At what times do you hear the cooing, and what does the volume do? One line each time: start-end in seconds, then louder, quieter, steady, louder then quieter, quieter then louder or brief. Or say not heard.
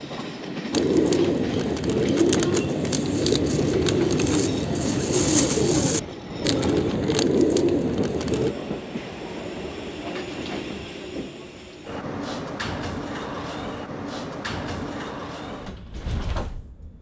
0.7-8.6 steady.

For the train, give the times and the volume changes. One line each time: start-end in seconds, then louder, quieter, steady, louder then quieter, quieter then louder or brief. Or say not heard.
0.0-16.9 steady.